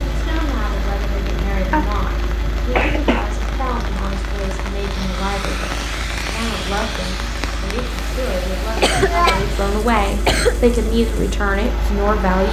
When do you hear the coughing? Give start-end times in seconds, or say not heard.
1.7-3.2, 8.8-10.6.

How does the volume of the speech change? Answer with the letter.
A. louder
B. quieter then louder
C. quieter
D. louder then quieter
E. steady
A.